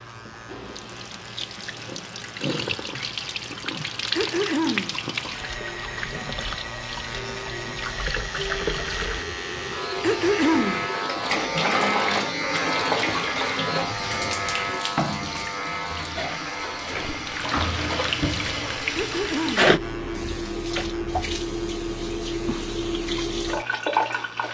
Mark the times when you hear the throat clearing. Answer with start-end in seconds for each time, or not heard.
4.2-5.0, 10.0-10.8, 18.9-19.8.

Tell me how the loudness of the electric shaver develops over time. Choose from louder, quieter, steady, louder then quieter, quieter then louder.
louder then quieter.